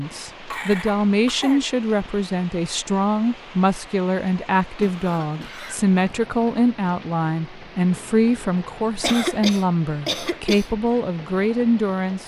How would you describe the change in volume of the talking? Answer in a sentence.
The loudness of the talking stays about the same.